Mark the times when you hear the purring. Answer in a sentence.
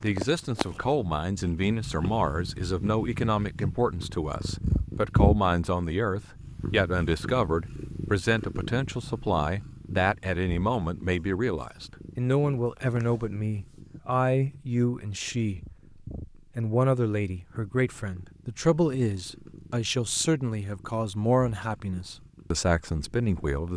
You can hear the purring from 0.0 to 23.7 s.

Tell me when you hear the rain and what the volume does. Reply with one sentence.
You can't hear the rain here.